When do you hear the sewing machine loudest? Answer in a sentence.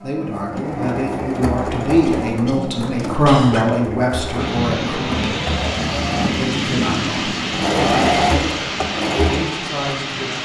The loudest moment of the sewing machine is at 8 seconds.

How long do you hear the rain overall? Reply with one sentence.
The rain can be heard for 6 seconds in total.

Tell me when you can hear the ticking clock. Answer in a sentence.
You can't hear the ticking clock here.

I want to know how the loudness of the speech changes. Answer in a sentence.
The volume of the speech goes up, then down.